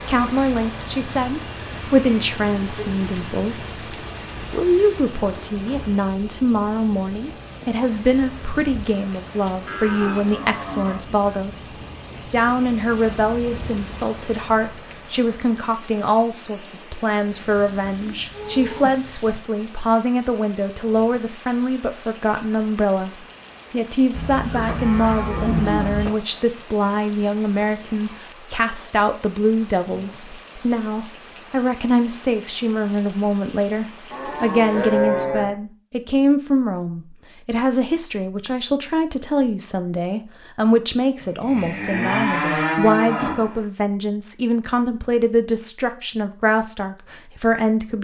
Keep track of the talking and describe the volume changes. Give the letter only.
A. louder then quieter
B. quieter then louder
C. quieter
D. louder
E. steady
E.